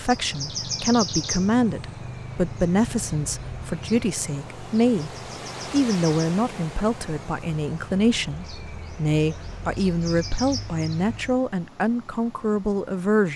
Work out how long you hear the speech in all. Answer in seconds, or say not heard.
13 s.